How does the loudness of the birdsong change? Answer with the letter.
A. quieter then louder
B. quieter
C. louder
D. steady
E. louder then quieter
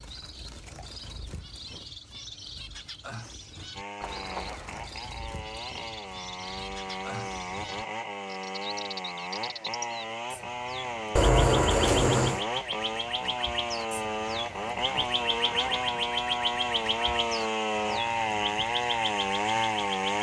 C.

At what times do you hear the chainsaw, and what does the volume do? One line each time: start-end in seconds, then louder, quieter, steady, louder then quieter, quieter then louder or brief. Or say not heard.
3.8-20.1 louder.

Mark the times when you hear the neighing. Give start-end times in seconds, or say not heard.
4.0-4.9, 11.2-12.4.